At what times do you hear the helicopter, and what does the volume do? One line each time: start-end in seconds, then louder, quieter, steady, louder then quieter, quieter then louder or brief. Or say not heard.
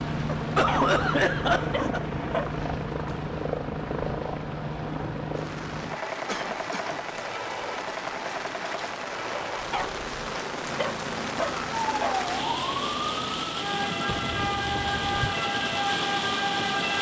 0.0-16.9 quieter.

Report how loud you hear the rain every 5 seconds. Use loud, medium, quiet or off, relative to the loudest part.
medium, medium, loud, loud.